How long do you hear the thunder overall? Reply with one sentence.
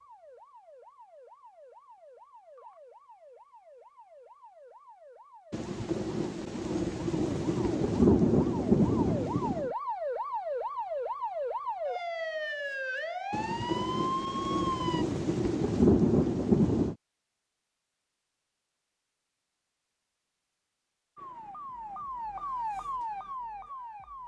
You can hear the thunder for 8 seconds altogether.